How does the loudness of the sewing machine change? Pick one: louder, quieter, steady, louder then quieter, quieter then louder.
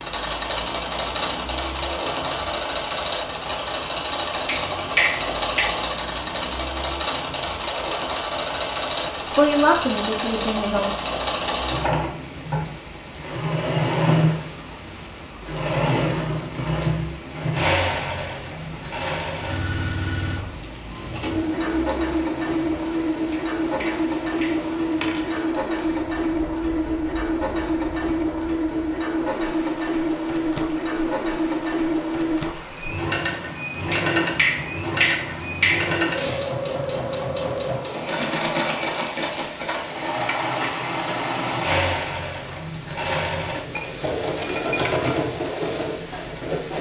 steady.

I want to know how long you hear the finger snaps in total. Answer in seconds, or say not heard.
5 s.